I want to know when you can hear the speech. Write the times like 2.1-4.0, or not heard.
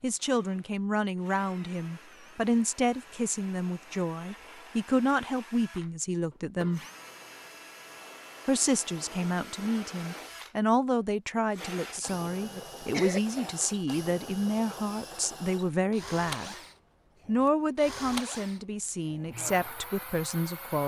0.0-6.8, 8.4-16.6, 17.2-20.8.